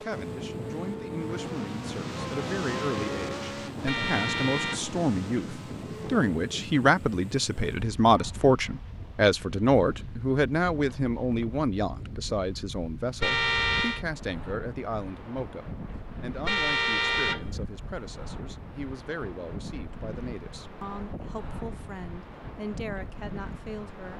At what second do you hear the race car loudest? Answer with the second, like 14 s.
3 s.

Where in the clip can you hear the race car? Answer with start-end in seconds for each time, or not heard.
0.0-6.7.